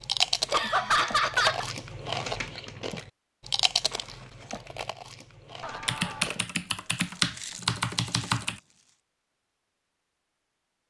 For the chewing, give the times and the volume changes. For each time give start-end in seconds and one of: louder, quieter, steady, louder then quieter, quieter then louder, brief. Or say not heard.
0.0-8.9 quieter.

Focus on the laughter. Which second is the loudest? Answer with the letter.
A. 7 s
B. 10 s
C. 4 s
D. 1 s
D.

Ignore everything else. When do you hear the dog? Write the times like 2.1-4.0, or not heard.
not heard.